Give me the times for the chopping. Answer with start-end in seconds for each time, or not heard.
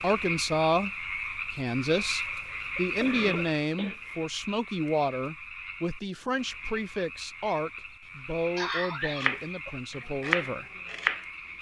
9.2-11.5.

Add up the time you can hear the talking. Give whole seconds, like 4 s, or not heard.
10 s.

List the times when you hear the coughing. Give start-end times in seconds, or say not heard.
2.2-4.2, 8.6-10.1.